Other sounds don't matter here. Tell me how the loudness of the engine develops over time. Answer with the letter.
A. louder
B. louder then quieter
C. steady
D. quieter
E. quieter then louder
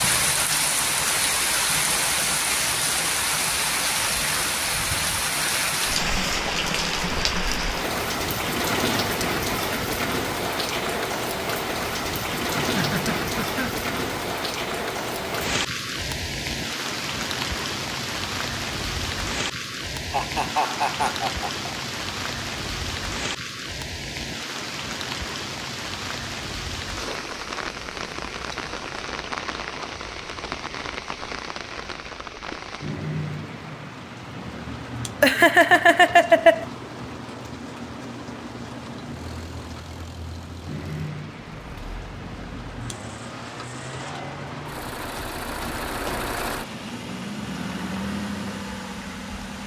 A.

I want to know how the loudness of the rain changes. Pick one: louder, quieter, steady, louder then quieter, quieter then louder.
quieter.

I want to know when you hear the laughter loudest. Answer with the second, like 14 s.
36 s.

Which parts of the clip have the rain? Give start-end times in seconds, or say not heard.
0.0-49.6.